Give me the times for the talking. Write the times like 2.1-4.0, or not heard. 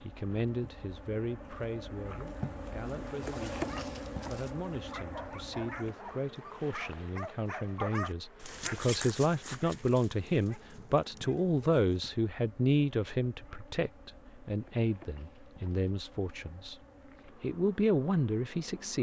0.0-16.8, 17.4-18.9.